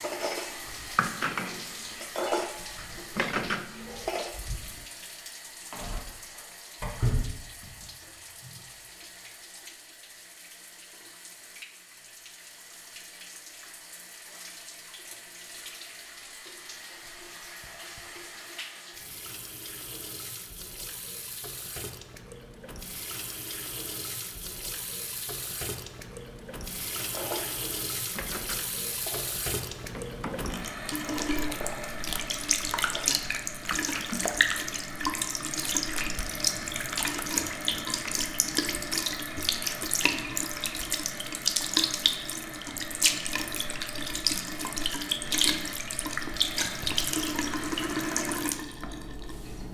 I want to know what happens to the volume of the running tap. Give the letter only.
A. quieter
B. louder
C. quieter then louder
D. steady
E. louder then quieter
B.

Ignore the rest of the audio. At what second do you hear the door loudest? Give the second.
7 s.